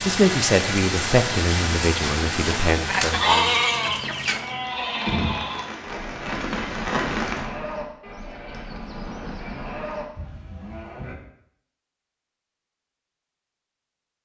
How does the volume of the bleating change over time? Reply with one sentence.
The volume of the bleating goes down.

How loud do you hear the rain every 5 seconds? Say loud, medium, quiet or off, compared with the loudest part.
loud, loud, off.